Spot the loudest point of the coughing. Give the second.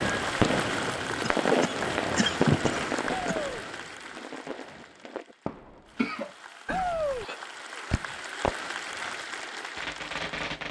2 s.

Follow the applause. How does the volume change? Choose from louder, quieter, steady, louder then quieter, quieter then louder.
quieter then louder.